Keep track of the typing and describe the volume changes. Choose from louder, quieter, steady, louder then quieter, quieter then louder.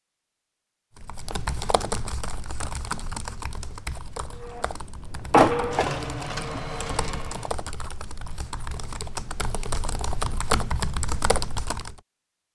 quieter then louder.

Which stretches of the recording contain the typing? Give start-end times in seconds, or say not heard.
0.9-12.0.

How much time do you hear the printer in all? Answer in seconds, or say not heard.
3 s.